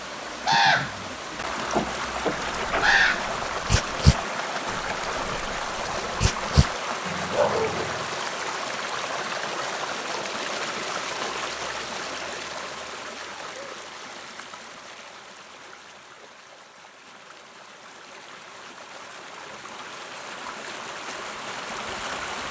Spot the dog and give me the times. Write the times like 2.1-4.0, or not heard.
2.4-8.1.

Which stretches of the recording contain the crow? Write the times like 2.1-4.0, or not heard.
0.5-3.3.